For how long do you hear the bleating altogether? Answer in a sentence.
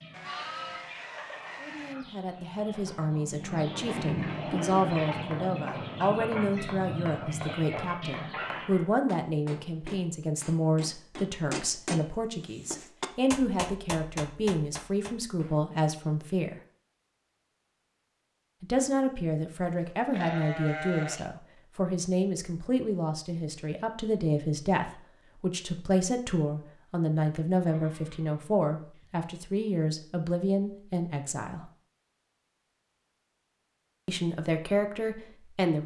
You can hear the bleating for 5 seconds altogether.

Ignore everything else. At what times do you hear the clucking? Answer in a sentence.
The clucking can be heard from 0.0 to 8.8 s.